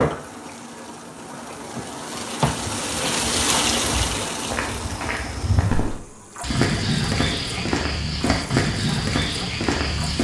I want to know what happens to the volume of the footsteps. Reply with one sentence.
The loudness of the footsteps goes up.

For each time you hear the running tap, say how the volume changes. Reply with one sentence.
The running tap can be heard from 0.0 to 10.2 s, getting louder then quieter.